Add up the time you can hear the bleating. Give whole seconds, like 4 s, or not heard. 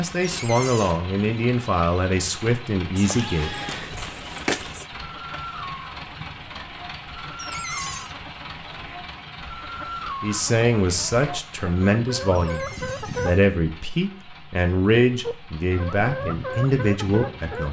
2 s.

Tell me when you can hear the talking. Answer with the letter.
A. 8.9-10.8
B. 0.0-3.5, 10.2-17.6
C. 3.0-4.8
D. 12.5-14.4
B.